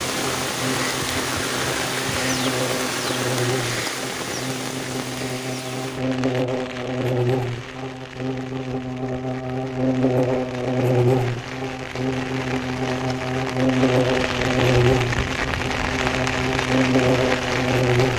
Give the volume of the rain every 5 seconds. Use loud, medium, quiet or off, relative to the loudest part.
loud, medium, medium, loud.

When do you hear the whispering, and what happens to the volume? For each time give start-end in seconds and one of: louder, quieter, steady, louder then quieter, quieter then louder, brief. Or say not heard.
not heard.